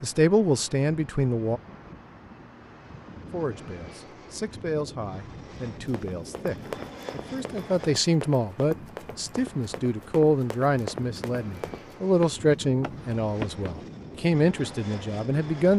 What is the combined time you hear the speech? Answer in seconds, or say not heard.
14 s.